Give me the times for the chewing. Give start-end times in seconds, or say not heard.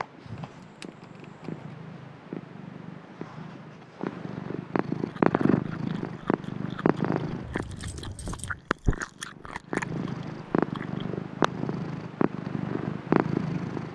5.0-11.1.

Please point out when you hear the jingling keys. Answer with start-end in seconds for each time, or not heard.
0.3-1.8, 7.4-8.6.